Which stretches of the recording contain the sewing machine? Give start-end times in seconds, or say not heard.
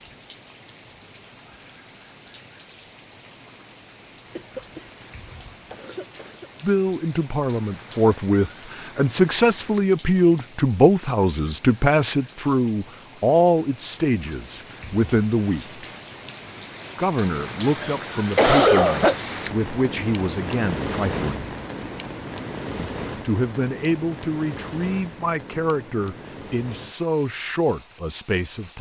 not heard.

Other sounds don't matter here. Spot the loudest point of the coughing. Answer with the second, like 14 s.
19 s.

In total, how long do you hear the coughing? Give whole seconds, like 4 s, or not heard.
3 s.